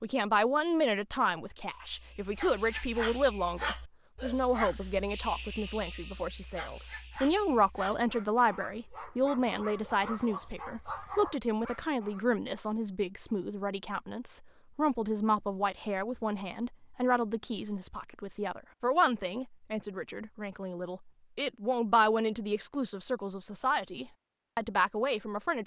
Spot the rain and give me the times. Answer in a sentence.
The rain can't be heard in this clip.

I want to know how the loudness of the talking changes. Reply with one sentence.
The loudness of the talking stays about the same.